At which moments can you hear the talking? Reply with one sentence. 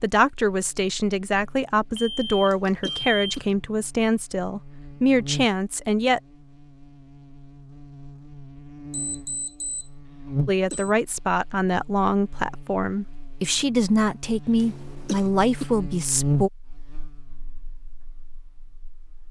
You can hear the talking from 0.0 to 6.2 s and from 10.4 to 16.5 s.